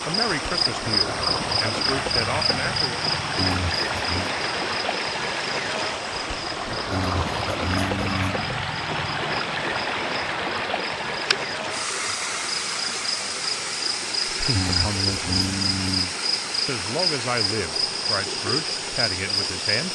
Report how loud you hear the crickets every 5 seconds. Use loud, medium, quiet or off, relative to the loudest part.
loud, medium, loud, loud.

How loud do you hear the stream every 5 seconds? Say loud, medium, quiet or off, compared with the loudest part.
loud, loud, loud, medium.